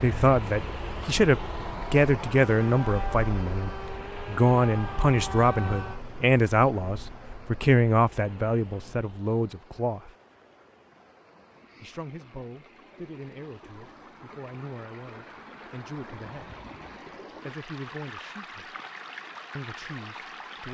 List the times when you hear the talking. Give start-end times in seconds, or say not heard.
0.0-10.1, 11.8-16.6, 17.4-18.8, 19.6-20.6.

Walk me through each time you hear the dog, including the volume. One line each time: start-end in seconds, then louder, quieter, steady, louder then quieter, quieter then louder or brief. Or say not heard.
not heard.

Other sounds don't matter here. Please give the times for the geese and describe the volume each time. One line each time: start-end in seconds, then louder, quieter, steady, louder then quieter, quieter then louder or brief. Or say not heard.
not heard.